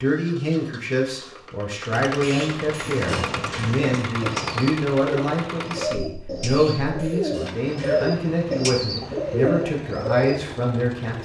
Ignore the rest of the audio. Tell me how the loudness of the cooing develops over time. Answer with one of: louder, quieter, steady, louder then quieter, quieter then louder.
louder.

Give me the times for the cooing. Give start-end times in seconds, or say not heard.
3.0-10.4.